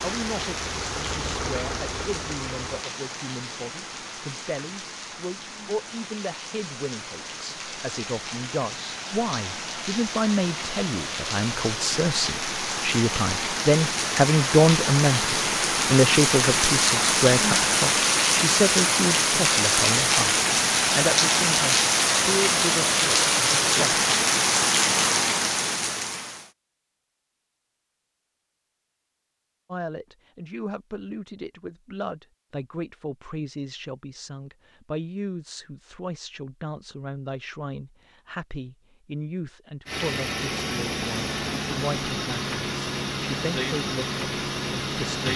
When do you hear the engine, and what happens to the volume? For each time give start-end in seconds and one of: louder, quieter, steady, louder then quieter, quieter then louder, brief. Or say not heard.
0.0-2.9 brief
39.9-45.3 steady.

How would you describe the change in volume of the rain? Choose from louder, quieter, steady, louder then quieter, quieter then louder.
louder.